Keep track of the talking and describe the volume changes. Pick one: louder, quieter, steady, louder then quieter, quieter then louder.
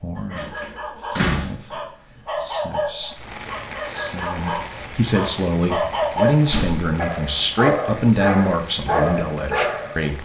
louder.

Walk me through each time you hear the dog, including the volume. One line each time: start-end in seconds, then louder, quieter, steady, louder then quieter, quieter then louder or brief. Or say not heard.
0.1-10.1 louder.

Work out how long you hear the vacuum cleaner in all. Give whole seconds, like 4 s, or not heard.
not heard.